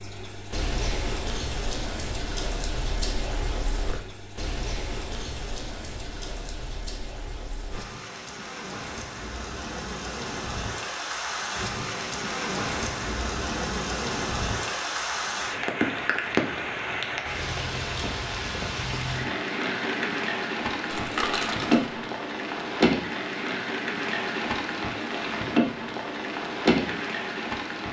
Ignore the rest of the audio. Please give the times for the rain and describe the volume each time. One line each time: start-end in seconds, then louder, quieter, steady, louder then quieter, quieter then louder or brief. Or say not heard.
0.0-27.8 louder.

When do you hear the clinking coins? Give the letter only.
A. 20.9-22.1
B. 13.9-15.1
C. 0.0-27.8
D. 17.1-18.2
A.